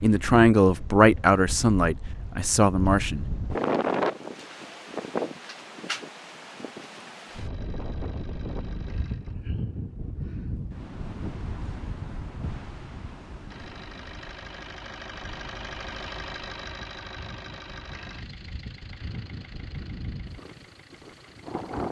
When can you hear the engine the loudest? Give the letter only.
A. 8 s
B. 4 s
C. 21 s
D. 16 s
D.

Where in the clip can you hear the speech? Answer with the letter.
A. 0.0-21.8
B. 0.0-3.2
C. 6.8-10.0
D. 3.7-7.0
B.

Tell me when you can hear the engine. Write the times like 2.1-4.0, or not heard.
7.2-9.3, 13.4-21.8.